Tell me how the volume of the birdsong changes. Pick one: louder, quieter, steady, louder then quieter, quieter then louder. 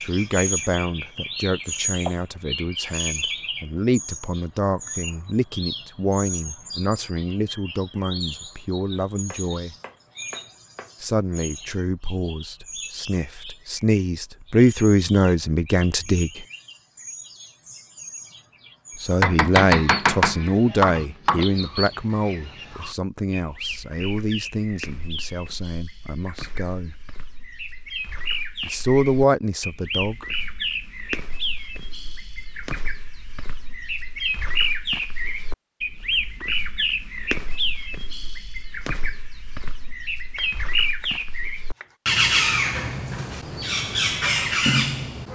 quieter then louder.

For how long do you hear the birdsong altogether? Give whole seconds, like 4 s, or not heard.
45 s.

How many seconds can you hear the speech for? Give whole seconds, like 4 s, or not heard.
25 s.